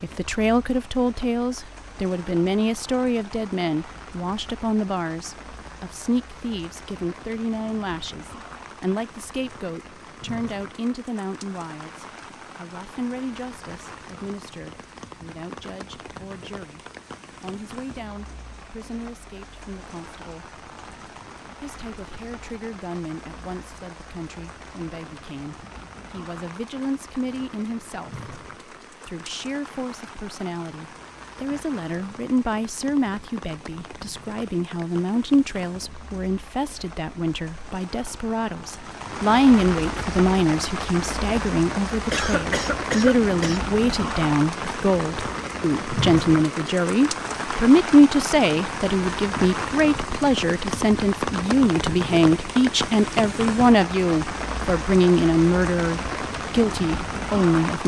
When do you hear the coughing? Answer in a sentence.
You can hear the coughing from 41.7 to 43.6 s.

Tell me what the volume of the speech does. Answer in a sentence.
The volume of the speech goes down, then up.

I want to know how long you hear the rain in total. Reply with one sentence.
The rain can be heard for 58 seconds in total.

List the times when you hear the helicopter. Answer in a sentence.
You can't hear the helicopter here.